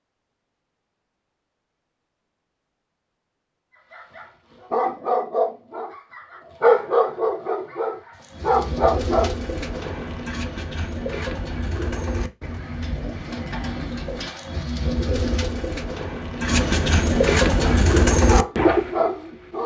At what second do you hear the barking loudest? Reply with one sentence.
The loudest moment of the barking is at 7 seconds.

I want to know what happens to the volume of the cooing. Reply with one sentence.
The loudness of the cooing goes up.